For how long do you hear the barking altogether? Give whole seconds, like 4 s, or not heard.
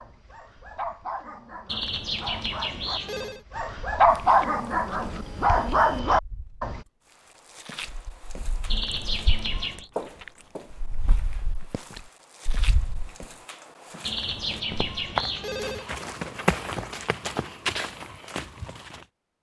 7 s.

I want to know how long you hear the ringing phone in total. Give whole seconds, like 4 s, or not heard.
5 s.